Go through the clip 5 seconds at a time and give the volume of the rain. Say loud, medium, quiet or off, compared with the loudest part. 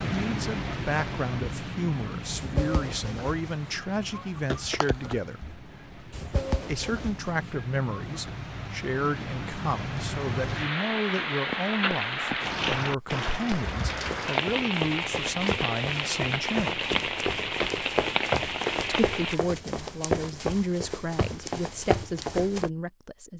medium, medium, loud, loud, off.